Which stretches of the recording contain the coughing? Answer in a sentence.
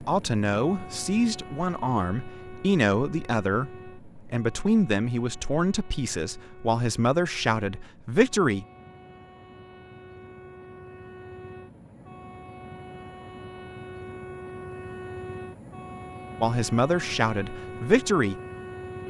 You can't hear the coughing here.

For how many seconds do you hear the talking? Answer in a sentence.
The talking can be heard for 11 seconds in total.